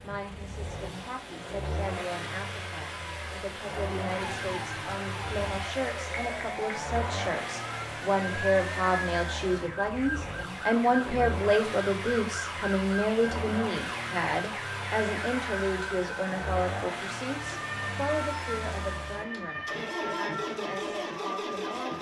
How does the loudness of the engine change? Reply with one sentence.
The loudness of the engine stays about the same.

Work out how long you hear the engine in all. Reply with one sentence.
You can hear the engine for 22 seconds altogether.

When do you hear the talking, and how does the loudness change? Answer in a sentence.
The talking can be heard from 0.0 to 21.9 s, getting louder then quieter.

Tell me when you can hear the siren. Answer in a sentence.
The siren can be heard from 4.1 to 21.8 s.